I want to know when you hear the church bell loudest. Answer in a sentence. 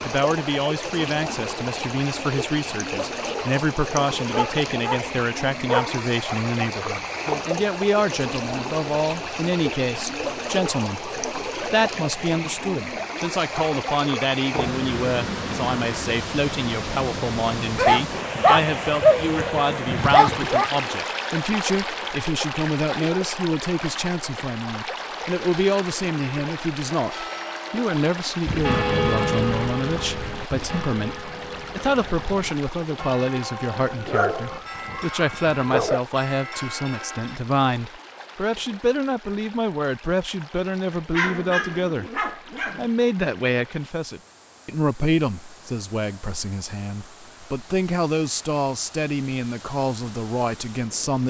The volume of the church bell peaks at 29 seconds.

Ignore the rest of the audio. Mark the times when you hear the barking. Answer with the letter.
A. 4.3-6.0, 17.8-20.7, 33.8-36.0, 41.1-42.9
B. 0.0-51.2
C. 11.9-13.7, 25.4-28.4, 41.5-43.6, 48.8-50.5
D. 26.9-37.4
A.